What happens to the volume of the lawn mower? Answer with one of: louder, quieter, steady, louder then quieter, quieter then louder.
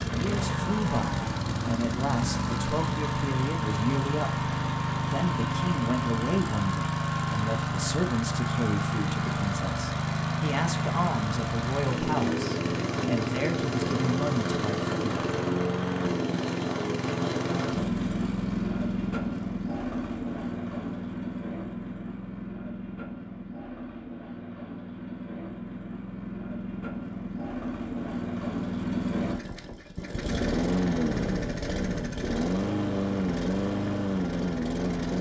quieter then louder.